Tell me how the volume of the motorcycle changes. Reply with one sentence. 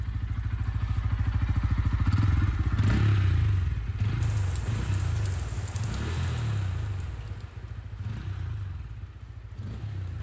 The loudness of the motorcycle goes down.